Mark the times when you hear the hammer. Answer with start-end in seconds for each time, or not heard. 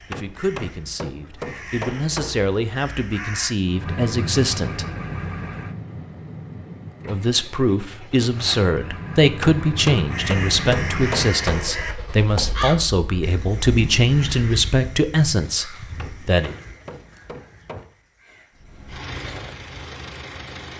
0.1-2.5, 9.4-11.8, 15.9-17.9.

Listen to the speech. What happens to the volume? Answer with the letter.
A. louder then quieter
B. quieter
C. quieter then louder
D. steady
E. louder
E.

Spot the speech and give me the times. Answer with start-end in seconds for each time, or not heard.
0.0-4.8, 7.0-16.6.